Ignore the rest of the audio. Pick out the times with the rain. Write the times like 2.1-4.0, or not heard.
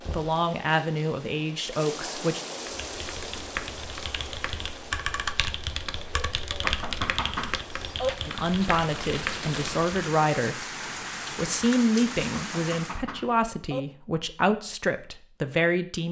0.0-13.0.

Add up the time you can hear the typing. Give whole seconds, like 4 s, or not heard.
7 s.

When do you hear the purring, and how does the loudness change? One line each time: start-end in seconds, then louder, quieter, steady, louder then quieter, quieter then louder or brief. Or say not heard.
not heard.